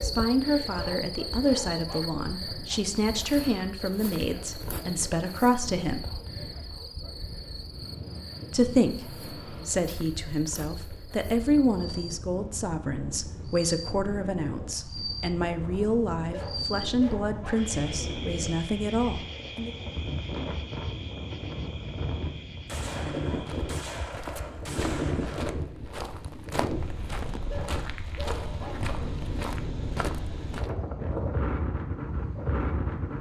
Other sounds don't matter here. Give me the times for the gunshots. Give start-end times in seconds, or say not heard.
3.3-3.7, 22.6-25.6.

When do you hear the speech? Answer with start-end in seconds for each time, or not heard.
0.0-6.0, 8.5-19.7.